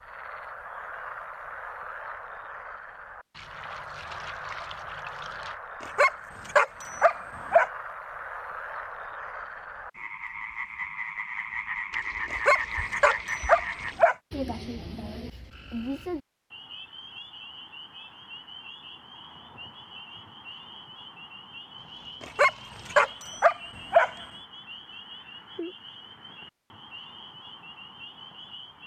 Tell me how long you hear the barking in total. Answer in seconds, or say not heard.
6 s.